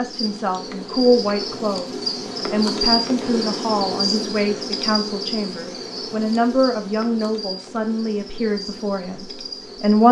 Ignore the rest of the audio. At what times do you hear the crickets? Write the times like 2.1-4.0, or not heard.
0.0-10.0.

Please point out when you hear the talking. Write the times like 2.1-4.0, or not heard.
0.0-10.0.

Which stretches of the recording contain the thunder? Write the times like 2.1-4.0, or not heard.
not heard.